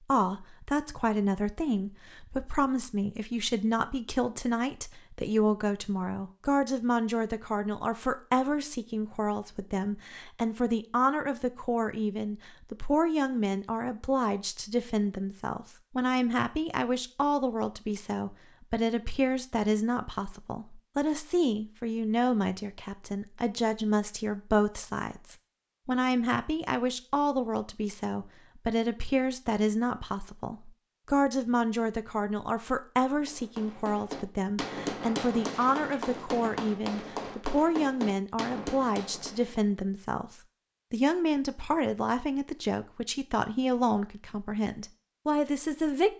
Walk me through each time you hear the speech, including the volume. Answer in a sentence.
The speech can be heard from 0.1 to 46.1 s, at a steady volume.